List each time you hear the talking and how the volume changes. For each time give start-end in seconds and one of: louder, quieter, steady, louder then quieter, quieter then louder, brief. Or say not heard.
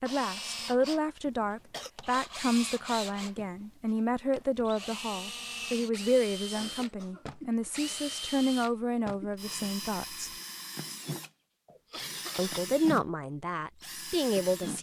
0.0-10.3 steady
12.3-14.7 brief.